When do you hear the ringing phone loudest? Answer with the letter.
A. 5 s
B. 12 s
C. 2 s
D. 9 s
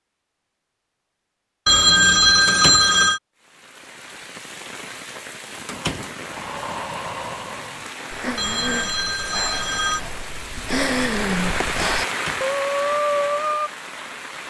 C.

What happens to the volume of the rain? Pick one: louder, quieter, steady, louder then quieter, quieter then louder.
louder.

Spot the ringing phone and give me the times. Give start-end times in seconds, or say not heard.
1.6-3.2, 8.3-10.0.